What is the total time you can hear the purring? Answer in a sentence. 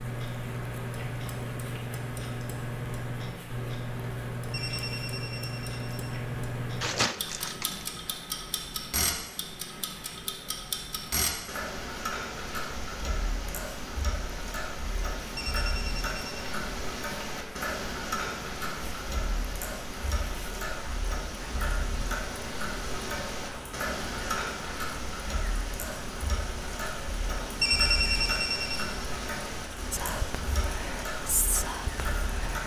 The purring can't be heard in this clip.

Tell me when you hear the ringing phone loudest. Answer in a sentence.
The volume of the ringing phone peaks at 28 seconds.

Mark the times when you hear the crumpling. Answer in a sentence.
The crumpling can be heard from 6.8 to 7.8 s.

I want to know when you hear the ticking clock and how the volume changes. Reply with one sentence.
You can hear the ticking clock from 0.0 to 32.6 s, at a steady volume.